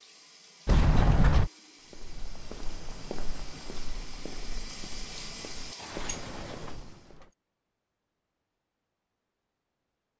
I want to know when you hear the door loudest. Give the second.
1 s.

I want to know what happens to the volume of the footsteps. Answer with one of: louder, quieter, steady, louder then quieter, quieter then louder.
quieter then louder.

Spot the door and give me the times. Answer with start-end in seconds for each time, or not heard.
0.7-1.5, 5.8-6.8.